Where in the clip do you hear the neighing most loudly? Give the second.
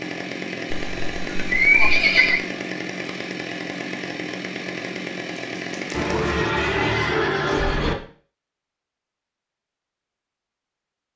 2 s.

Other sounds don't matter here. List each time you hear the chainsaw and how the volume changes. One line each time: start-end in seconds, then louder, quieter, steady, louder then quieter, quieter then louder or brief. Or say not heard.
0.0-6.5 steady.